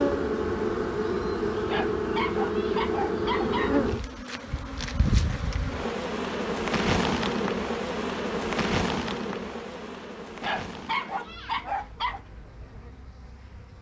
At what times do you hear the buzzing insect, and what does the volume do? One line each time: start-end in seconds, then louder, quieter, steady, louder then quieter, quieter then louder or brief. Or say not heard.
0.0-13.7 quieter.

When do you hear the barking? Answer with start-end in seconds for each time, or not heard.
1.6-3.8, 10.4-12.2.